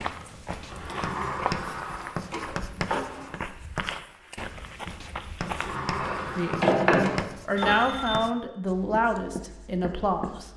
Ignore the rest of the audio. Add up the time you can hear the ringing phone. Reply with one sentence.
The ringing phone can be heard for 2 seconds in total.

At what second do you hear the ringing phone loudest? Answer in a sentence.
The loudest moment of the ringing phone is at 7 seconds.